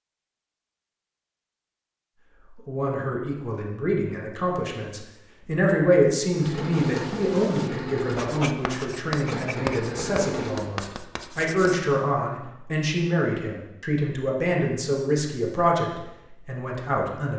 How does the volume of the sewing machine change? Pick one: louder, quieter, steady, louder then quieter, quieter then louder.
steady.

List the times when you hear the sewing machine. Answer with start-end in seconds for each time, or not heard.
6.3-10.7.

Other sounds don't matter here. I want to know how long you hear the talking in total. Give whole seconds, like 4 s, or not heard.
15 s.